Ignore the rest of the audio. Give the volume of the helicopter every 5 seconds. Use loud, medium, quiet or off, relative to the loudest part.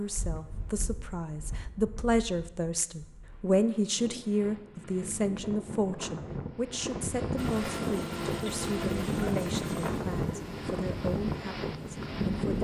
off, loud, medium.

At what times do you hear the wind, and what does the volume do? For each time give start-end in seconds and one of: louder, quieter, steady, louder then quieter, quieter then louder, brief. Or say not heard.
0.0-12.5 louder.